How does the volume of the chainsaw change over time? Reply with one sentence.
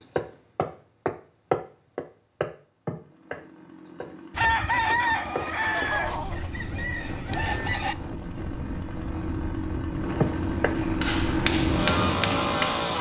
The volume of the chainsaw goes up.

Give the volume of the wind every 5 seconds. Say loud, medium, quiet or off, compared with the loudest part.
off, medium, loud.